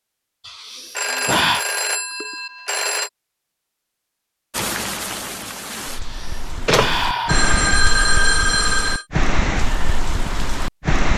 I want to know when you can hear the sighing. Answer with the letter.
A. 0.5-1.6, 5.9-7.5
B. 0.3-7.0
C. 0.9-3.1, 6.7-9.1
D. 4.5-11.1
A.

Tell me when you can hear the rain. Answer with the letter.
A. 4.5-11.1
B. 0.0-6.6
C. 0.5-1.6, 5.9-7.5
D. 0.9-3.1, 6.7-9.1
A.